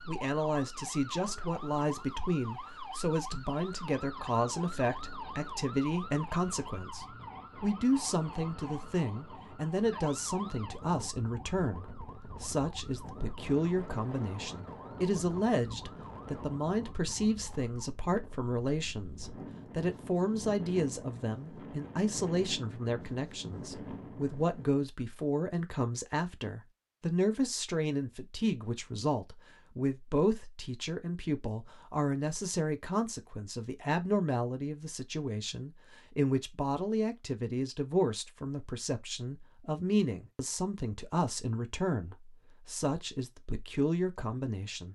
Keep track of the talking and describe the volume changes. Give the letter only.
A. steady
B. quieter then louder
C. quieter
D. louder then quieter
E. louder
A.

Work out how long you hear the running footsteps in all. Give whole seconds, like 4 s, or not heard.
not heard.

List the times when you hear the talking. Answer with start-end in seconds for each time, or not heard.
0.0-44.8.